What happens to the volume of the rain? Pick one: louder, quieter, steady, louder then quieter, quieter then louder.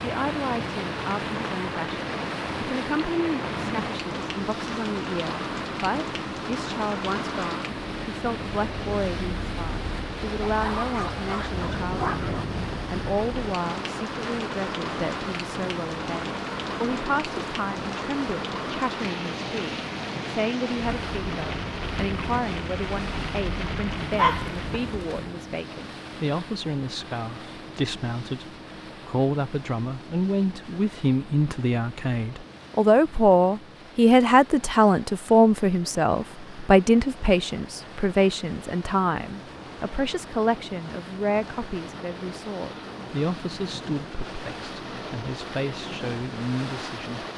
steady.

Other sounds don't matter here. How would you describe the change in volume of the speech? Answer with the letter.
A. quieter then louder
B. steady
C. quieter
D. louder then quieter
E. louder
D.